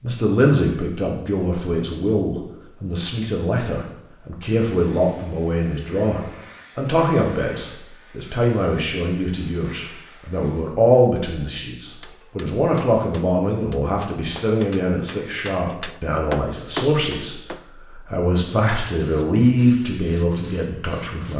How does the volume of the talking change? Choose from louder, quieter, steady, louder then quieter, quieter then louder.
steady.